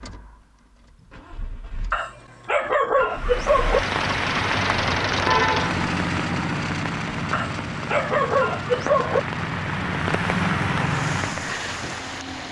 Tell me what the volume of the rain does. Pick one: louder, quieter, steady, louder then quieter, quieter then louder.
quieter then louder.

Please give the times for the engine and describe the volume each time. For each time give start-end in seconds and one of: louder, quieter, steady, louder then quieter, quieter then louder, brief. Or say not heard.
0.0-12.4 louder then quieter.